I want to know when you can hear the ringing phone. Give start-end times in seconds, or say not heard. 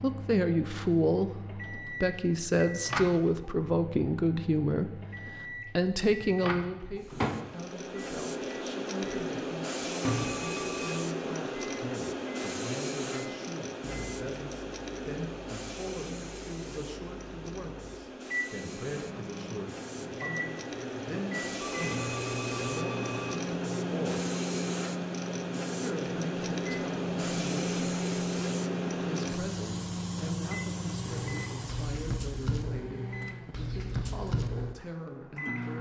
10.1-11.1, 21.6-23.4.